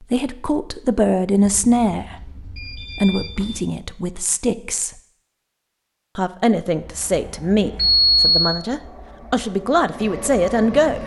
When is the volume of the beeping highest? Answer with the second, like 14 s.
8 s.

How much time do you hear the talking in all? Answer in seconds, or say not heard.
10 s.